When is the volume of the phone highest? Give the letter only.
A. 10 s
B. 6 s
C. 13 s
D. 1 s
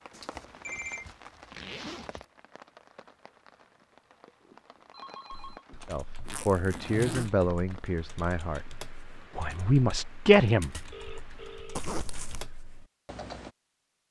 D.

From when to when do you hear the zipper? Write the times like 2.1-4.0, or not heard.
0.3-2.2, 6.2-7.3, 11.8-12.4.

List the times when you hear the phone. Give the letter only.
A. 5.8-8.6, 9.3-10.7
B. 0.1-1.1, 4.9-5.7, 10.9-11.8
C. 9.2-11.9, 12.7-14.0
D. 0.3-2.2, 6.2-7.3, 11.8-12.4
B.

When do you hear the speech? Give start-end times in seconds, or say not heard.
5.8-8.6, 9.3-10.7.